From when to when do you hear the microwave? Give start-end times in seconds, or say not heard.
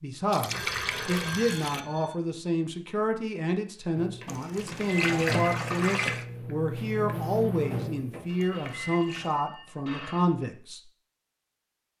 4.0-9.0.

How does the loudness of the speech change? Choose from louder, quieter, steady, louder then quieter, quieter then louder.
steady.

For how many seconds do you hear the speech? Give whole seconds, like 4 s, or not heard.
11 s.